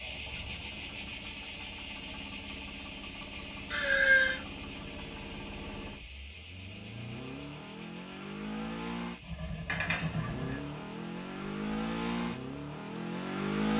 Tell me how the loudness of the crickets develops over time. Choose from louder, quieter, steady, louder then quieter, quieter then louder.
quieter.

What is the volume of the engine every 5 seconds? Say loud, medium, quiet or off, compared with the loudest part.
quiet, medium, loud.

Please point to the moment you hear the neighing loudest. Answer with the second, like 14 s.
4 s.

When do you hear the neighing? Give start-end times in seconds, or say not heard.
3.7-4.5, 9.2-10.6.